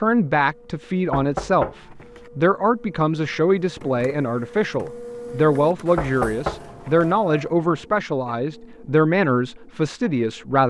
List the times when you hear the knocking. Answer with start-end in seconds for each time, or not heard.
1.1-2.3, 6.0-7.2.